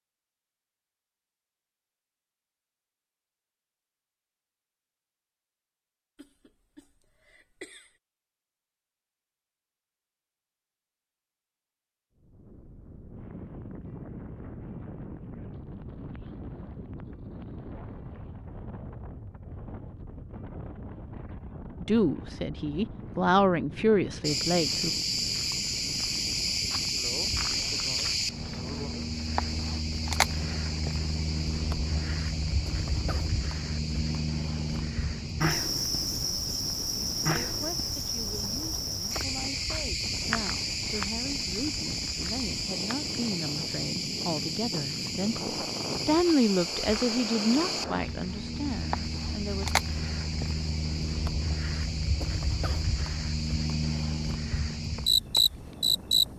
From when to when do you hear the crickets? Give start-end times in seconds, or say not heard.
24.2-56.2.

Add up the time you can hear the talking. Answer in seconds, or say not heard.
16 s.